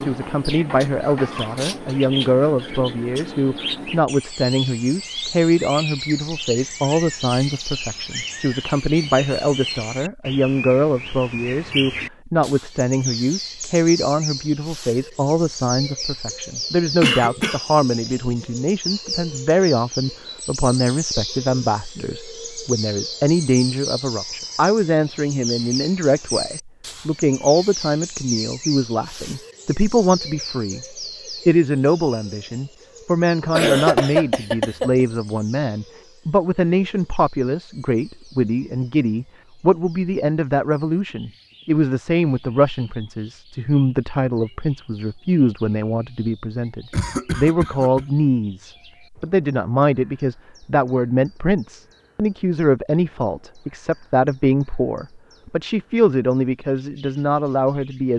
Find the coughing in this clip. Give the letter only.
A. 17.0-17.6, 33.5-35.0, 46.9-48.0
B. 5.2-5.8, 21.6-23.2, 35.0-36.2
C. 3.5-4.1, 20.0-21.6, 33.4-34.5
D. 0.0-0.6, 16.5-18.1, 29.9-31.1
A.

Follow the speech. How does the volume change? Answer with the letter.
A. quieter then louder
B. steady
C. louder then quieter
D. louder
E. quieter
B.